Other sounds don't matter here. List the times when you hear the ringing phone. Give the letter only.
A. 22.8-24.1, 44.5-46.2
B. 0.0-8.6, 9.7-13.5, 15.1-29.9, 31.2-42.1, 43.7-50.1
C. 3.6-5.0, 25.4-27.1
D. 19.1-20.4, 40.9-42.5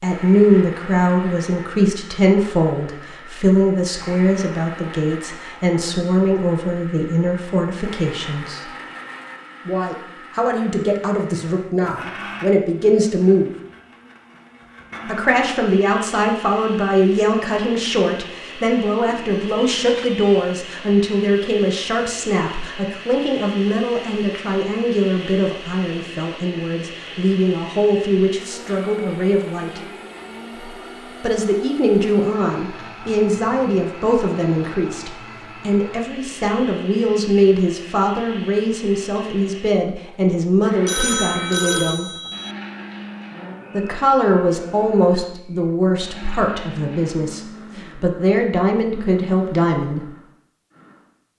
D.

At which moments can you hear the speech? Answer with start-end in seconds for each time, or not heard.
0.0-8.6, 9.7-13.5, 15.1-29.9, 31.2-42.1, 43.7-50.1.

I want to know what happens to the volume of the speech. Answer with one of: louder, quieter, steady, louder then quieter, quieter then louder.
steady.